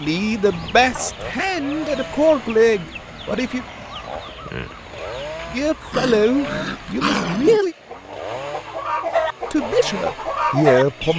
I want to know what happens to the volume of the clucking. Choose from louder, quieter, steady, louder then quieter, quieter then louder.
louder.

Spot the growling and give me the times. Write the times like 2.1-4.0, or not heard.
0.5-1.4, 5.9-7.6.